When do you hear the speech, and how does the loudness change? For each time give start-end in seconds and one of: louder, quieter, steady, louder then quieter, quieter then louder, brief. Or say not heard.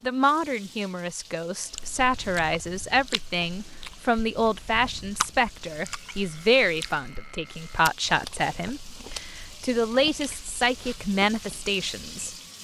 0.0-12.3 steady.